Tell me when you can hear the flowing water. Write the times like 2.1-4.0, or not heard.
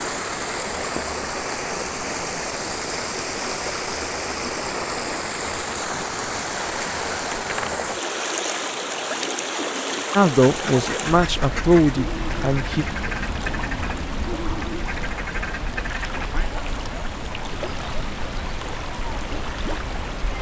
0.0-20.3.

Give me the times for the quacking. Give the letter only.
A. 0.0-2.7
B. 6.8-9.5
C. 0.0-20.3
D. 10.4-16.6
D.